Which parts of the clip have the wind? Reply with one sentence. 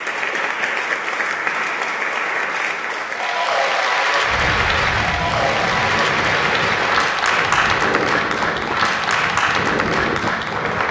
The wind can be heard from 4.2 to 10.8 s.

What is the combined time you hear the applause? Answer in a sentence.
The applause can be heard for 11 seconds in total.